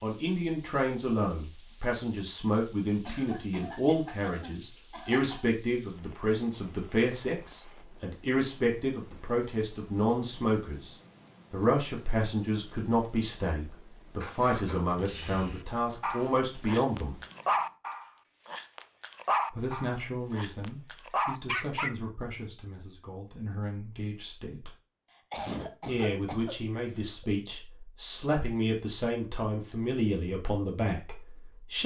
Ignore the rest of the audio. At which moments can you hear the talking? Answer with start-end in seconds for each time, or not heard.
0.0-17.1, 19.5-24.7, 25.9-31.8.